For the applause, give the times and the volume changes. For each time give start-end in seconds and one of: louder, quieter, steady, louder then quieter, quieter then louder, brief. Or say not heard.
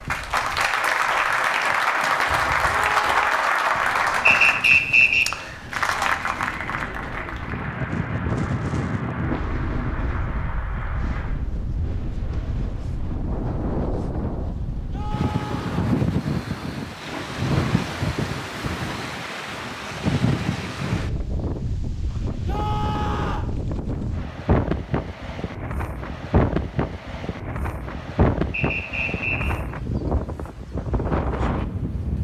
0.0-11.4 quieter.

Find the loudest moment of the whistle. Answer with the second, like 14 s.
5 s.